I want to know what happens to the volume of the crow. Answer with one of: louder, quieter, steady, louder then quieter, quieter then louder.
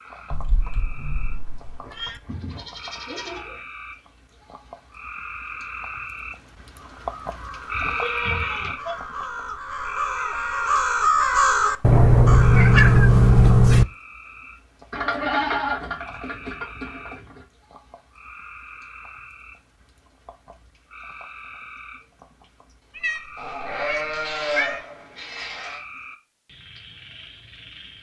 louder then quieter.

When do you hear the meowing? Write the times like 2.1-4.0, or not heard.
0.3-2.2, 11.8-13.8, 22.9-24.9.